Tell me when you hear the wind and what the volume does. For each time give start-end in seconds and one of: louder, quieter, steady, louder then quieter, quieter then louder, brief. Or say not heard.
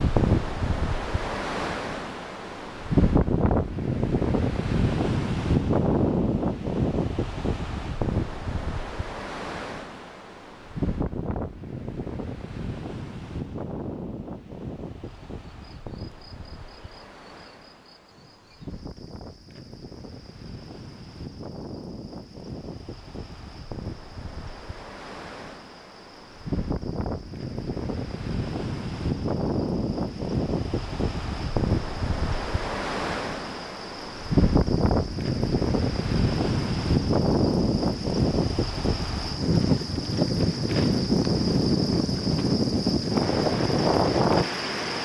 0.0-44.9 quieter then louder.